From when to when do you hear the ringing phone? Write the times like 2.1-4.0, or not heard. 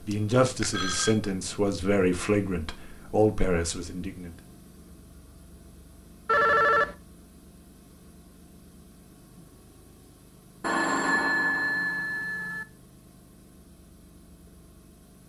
0.1-1.1, 6.2-7.0, 10.6-12.7.